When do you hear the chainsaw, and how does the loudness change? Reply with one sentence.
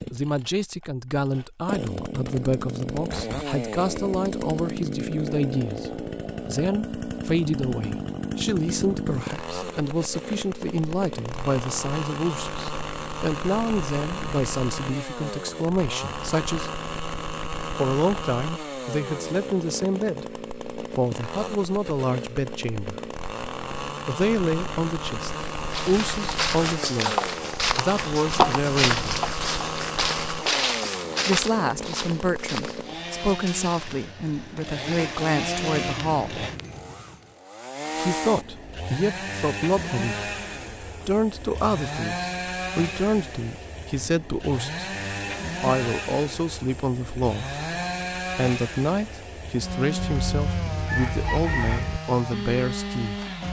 The chainsaw can be heard from 0.0 to 53.4 s, at a steady volume.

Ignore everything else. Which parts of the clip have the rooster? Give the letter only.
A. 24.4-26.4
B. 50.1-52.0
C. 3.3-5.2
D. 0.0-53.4
B.